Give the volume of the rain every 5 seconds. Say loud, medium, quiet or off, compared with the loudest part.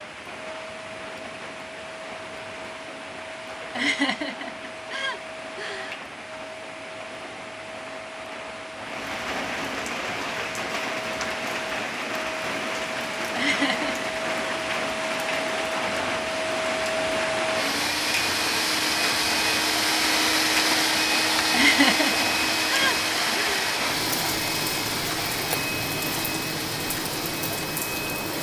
medium, medium, loud, loud, loud, loud.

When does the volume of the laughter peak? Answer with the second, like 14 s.
22 s.